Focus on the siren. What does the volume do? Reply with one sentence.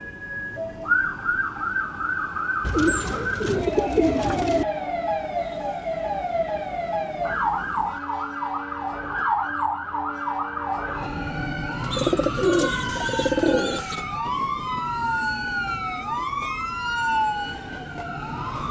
The volume of the siren stays about the same.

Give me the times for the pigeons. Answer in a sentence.
The pigeons can be heard from 2.6 to 4.7 s and from 11.9 to 14.0 s.